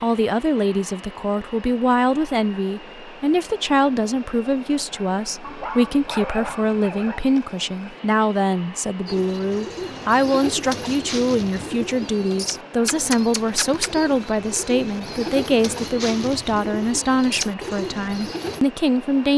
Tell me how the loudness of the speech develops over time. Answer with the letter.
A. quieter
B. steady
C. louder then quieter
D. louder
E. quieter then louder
B.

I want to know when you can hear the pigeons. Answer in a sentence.
You can hear the pigeons from 9.1 to 18.6 s.